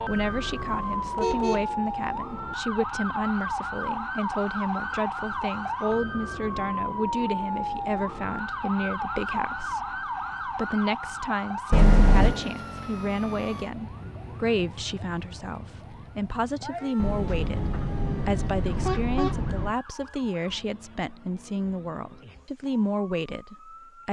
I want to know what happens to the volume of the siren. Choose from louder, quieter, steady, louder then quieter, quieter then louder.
quieter.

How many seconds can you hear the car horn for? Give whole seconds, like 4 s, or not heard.
5 s.